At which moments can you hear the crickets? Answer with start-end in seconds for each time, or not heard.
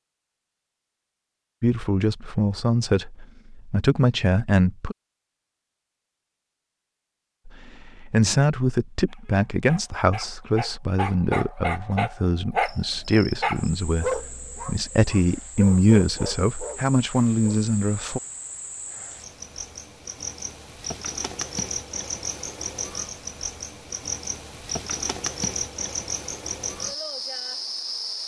12.6-28.2.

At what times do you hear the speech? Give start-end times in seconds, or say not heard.
1.6-5.0, 7.5-18.2.